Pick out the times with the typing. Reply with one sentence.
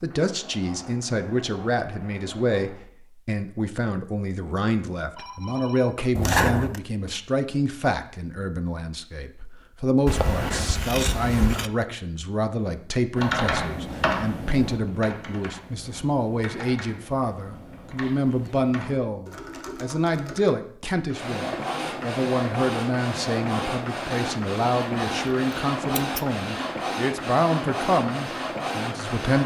The typing can be heard from 13.2 to 20.6 s.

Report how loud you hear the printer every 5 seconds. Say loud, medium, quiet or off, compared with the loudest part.
quiet, off, off, off, loud, loud.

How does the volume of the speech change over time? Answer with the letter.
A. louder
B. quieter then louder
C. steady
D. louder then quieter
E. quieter
C.